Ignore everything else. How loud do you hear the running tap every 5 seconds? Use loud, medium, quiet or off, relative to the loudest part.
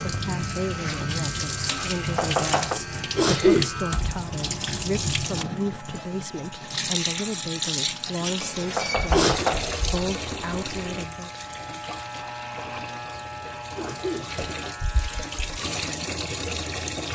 loud, loud, medium, loud.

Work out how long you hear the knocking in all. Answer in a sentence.
The knocking can be heard for 2 seconds in total.